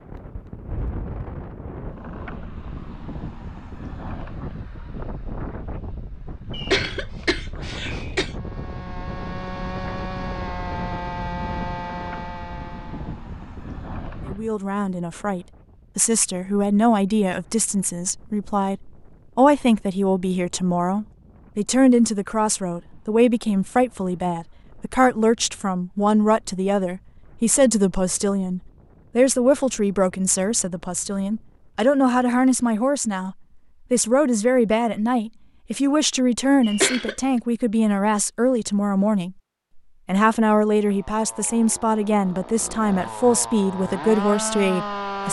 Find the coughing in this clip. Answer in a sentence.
The coughing can be heard from 6.5 to 8.3 s and from 36.6 to 37.1 s.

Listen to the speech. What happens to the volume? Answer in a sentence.
The volume of the speech stays about the same.